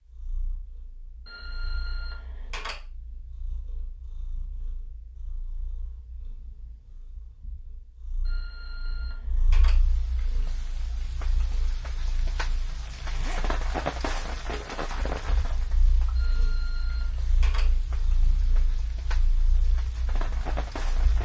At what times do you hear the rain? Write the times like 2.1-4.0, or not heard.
9.7-21.2.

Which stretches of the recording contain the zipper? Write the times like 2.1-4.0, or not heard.
12.8-13.5.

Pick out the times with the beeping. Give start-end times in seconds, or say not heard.
1.2-2.8, 8.2-9.7, 16.1-17.6.